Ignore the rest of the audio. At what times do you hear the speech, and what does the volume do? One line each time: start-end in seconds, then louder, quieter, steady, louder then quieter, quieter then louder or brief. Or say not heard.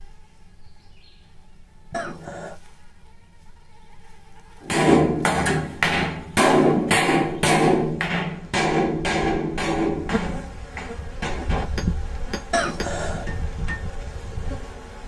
not heard.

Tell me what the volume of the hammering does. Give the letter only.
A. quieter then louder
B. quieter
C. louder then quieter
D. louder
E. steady
B.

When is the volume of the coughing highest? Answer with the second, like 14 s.
13 s.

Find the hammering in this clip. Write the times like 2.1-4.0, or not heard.
4.6-13.8.